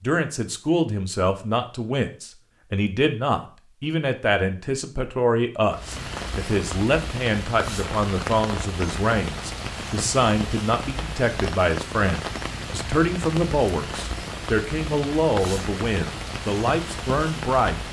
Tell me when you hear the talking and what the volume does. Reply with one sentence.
You can hear the talking from 0.0 to 17.8 s, at a steady volume.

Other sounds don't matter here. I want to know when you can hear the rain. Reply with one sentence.
The rain can be heard from 5.7 to 17.8 s.